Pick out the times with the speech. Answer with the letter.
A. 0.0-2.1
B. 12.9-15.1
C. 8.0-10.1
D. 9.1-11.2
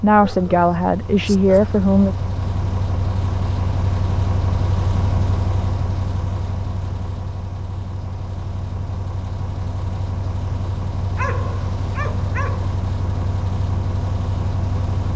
A.